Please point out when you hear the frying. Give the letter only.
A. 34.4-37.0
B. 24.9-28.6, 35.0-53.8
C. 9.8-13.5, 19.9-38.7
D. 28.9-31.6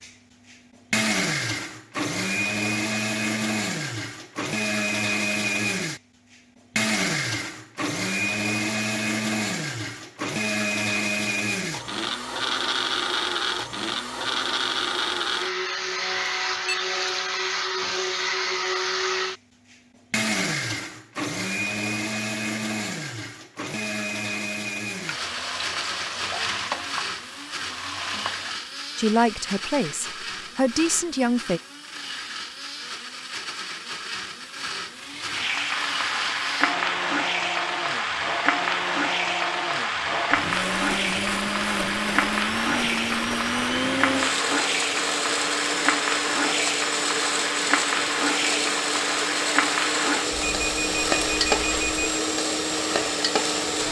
B.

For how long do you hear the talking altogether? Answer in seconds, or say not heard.
3 s.